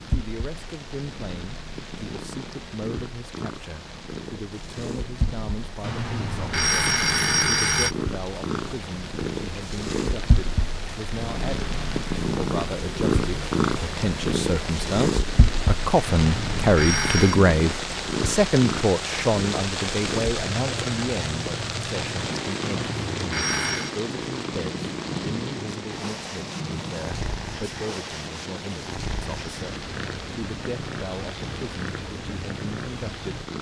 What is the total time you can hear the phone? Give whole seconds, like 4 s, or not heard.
5 s.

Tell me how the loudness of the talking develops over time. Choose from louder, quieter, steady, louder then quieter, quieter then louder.
louder then quieter.